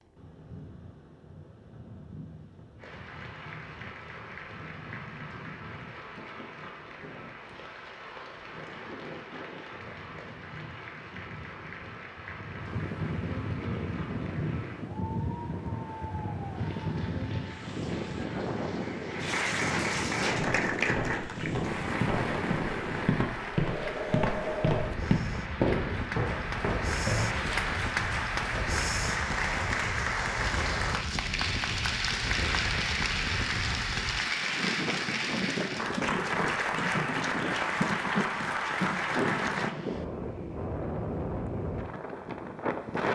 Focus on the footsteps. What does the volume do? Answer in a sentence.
The loudness of the footsteps goes up, then down.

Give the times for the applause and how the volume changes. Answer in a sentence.
You can hear the applause from 2.8 to 39.8 s, getting louder.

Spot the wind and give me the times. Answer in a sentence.
You can hear the wind from 0.0 to 43.1 s.